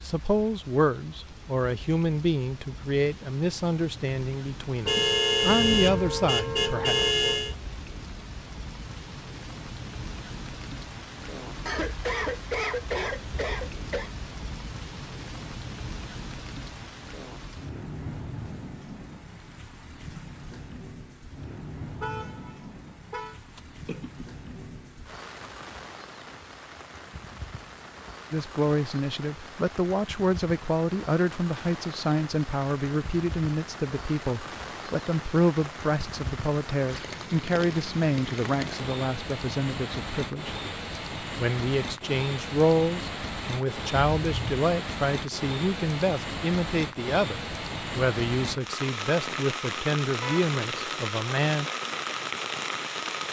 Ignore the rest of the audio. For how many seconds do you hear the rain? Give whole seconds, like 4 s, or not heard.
53 s.